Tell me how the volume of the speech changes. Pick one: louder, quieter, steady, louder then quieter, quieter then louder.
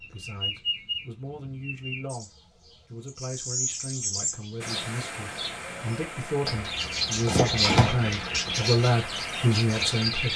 louder.